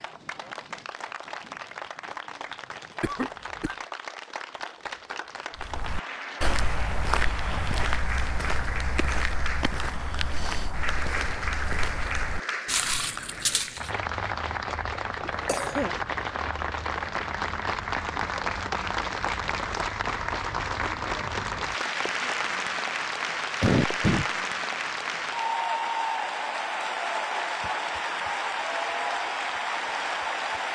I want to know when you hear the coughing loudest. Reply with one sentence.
The volume of the coughing peaks at 24 seconds.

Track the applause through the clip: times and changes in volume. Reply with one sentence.
The applause can be heard from 0.0 to 30.7 s, getting louder.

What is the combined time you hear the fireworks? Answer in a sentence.
The fireworks can't be heard in this clip.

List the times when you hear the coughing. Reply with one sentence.
The coughing can be heard from 3.0 to 3.8 s, from 15.4 to 15.9 s and from 23.6 to 24.2 s.